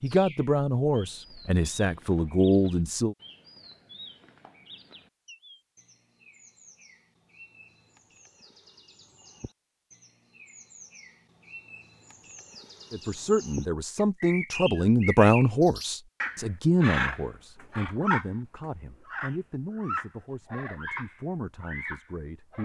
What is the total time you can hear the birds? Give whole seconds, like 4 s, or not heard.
22 s.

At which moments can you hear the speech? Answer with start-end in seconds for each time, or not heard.
0.0-3.1, 12.9-22.6.